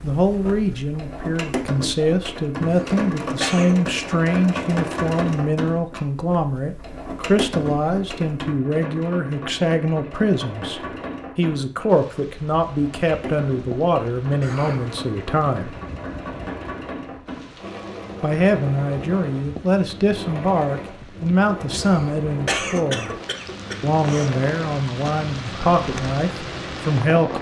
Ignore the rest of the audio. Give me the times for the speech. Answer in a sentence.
You can hear the speech from 0.0 to 15.8 s, from 18.2 to 23.1 s and from 23.8 to 27.3 s.